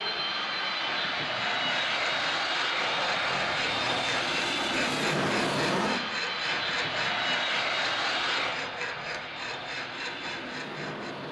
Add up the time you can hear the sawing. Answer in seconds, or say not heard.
10 s.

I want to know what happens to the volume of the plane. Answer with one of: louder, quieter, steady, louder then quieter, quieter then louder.
quieter.